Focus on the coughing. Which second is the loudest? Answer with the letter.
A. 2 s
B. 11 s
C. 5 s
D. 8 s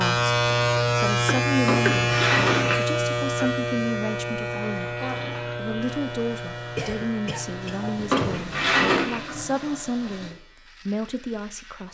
A.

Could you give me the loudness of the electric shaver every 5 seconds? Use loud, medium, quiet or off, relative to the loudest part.
loud, medium, quiet.